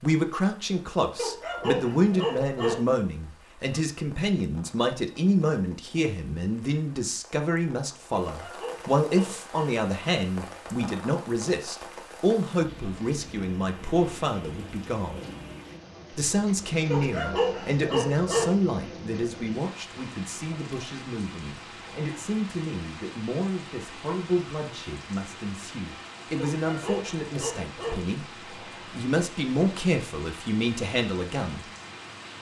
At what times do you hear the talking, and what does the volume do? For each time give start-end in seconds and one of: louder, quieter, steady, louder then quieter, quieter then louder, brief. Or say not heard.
0.0-15.2 steady
16.1-31.6 quieter then louder.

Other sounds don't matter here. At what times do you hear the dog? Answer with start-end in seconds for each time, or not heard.
1.1-2.8, 8.2-9.8, 16.9-18.6, 26.4-28.1.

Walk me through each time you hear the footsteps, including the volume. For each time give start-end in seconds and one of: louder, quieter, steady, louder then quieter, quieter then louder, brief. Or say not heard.
not heard.